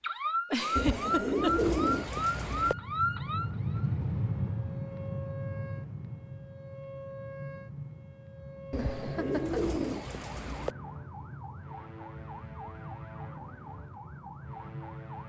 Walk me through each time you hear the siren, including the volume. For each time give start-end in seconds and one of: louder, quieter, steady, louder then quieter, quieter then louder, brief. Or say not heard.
0.0-15.2 quieter.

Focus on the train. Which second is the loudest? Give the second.
4 s.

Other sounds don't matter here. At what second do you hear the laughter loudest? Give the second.
1 s.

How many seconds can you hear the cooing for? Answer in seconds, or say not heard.
4 s.